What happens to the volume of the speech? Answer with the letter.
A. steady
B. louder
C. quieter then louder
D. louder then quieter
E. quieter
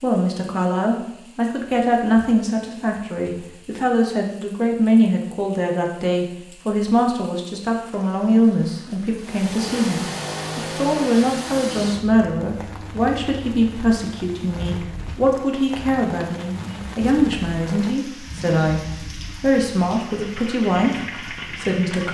A.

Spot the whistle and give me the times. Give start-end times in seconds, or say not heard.
not heard.